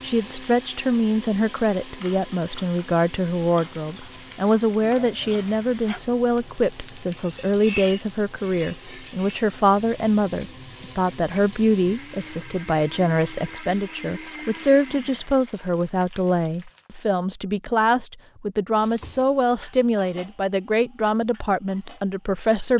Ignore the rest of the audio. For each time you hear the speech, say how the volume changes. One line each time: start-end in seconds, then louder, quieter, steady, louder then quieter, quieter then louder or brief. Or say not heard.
0.0-22.7 steady.